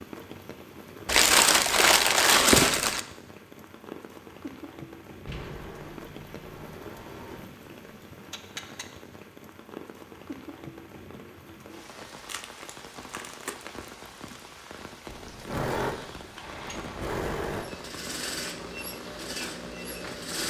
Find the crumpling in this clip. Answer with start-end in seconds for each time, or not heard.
1.1-3.0, 12.2-14.4.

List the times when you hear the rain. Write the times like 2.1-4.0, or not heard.
0.0-20.4.